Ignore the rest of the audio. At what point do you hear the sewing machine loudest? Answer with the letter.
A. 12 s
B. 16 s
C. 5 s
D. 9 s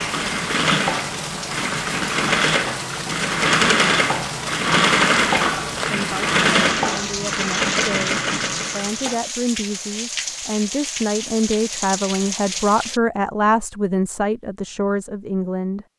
C.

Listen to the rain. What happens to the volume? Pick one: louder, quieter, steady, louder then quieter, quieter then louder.
steady.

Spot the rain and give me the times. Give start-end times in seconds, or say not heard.
0.0-13.0.